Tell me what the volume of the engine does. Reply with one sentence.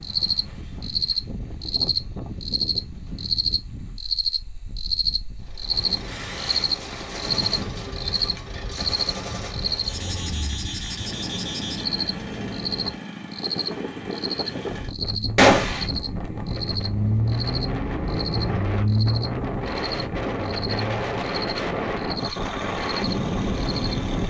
The loudness of the engine goes up, then down.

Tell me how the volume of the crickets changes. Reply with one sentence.
The volume of the crickets goes down.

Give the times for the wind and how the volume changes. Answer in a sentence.
The wind can be heard from 0.0 to 24.2 s, getting louder.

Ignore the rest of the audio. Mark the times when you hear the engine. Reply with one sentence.
The engine can be heard from 5.3 to 24.2 s.